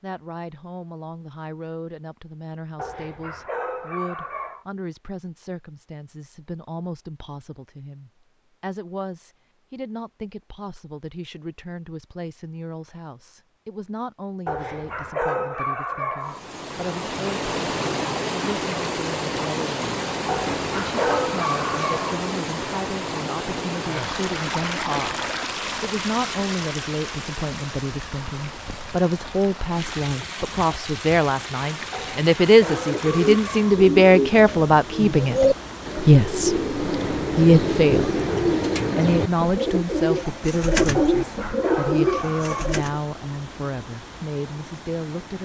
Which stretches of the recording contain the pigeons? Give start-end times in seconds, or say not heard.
32.6-43.0.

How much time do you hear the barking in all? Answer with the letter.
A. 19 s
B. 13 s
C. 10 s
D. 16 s
C.